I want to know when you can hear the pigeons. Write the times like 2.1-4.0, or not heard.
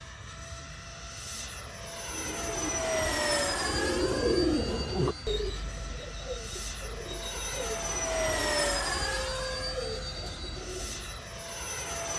2.1-11.3.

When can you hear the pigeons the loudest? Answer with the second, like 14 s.
4 s.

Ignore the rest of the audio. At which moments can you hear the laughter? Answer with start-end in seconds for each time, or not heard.
not heard.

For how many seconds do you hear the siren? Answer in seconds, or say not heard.
not heard.